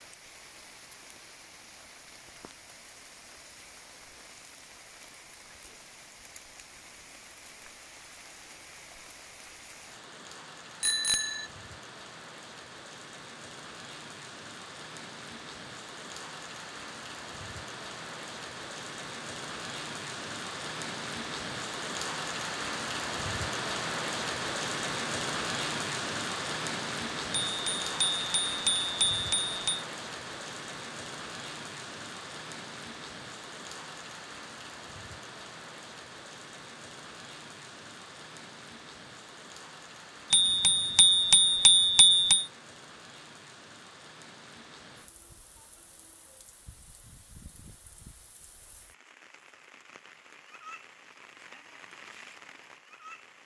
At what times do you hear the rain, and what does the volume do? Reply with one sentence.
The rain can be heard from 0.0 to 53.4 s, getting louder then quieter.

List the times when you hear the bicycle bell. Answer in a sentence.
The bicycle bell can be heard from 10.8 to 11.5 s, from 27.4 to 29.9 s and from 40.3 to 42.5 s.